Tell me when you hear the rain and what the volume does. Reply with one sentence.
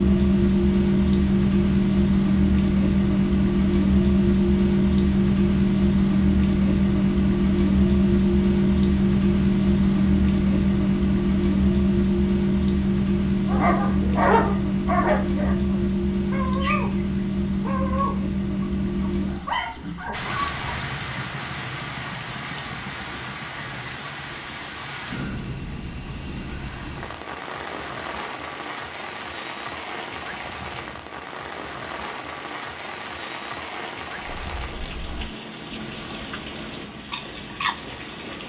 The rain can be heard from 0.0 to 38.4 s, getting quieter.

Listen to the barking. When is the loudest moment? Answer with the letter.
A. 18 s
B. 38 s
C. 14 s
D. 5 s
C.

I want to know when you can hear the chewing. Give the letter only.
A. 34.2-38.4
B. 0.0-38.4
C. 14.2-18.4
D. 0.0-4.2
A.